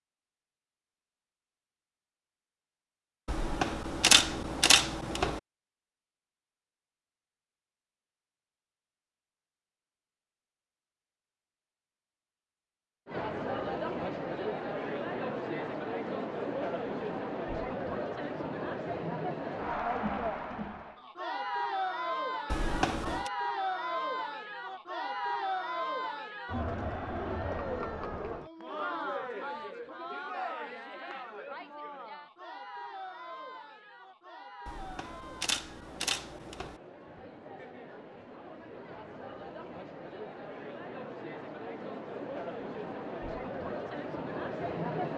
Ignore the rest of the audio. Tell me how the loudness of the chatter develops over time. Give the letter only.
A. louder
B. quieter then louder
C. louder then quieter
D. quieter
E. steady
B.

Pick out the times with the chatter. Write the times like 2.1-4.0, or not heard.
13.1-45.1.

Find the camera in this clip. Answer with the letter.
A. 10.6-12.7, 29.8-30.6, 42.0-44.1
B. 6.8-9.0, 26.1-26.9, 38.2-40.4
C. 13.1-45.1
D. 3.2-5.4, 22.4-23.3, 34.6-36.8
D.